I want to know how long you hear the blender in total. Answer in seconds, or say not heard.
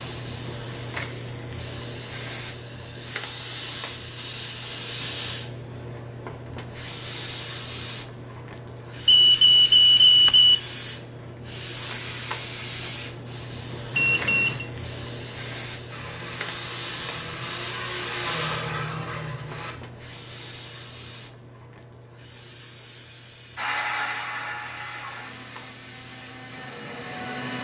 8 s.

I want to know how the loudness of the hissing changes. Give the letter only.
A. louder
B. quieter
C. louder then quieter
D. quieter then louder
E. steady
B.